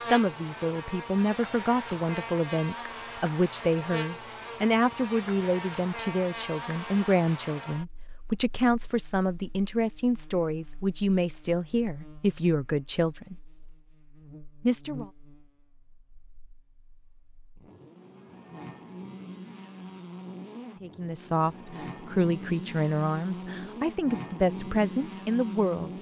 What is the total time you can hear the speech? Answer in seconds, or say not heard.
19 s.